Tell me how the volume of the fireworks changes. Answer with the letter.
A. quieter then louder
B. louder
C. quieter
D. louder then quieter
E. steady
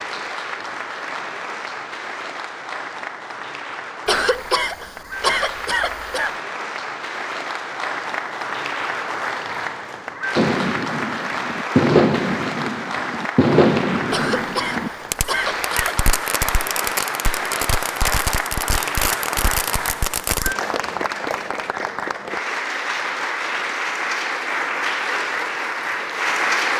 C.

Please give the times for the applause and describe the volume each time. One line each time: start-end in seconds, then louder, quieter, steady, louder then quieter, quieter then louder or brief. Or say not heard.
0.0-26.7 louder.